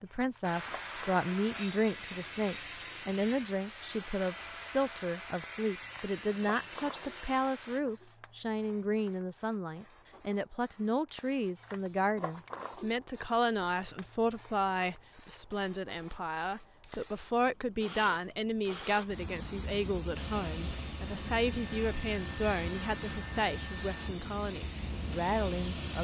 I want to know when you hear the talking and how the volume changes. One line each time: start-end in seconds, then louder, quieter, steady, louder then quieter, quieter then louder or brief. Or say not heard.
0.0-25.9 steady.